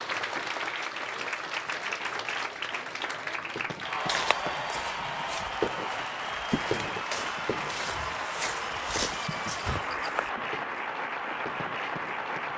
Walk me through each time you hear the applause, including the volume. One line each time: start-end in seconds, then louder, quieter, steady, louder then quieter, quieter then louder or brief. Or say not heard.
0.0-12.5 steady.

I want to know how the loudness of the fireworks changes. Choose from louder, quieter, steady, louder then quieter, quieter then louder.
louder then quieter.